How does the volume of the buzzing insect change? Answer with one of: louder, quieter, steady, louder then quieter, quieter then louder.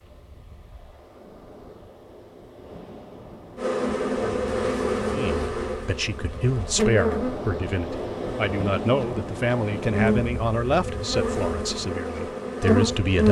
quieter then louder.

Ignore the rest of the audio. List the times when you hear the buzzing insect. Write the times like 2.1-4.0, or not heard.
3.5-13.2.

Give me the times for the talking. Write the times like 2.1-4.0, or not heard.
5.1-13.2.